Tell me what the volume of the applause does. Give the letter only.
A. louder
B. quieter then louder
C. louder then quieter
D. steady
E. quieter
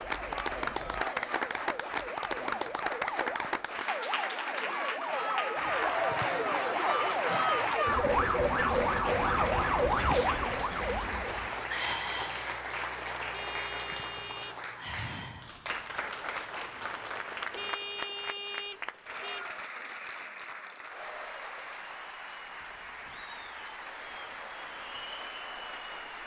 E.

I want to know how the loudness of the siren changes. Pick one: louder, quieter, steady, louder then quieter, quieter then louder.
louder.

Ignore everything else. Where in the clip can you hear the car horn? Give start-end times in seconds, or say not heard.
0.0-1.1, 13.3-14.6, 17.6-19.4.